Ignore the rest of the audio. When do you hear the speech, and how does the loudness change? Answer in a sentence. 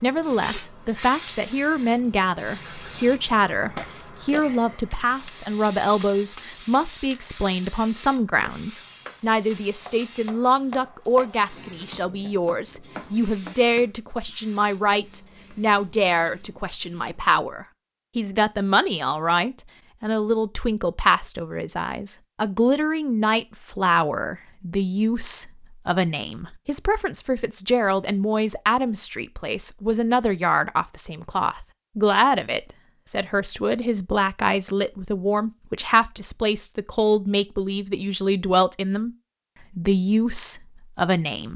The speech can be heard from 0.0 to 39.1 s, at a steady volume; and briefly from 39.8 to 41.5 s.